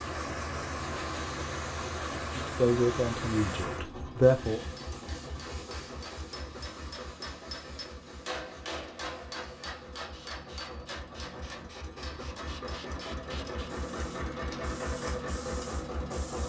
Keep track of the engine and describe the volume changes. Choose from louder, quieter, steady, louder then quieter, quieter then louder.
quieter then louder.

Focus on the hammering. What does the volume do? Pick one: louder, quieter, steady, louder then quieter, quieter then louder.
louder then quieter.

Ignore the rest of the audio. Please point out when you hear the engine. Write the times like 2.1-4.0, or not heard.
0.0-16.4.